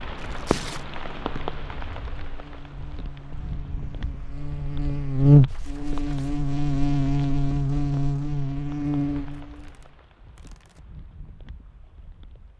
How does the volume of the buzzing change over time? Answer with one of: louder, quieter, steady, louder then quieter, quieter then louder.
louder then quieter.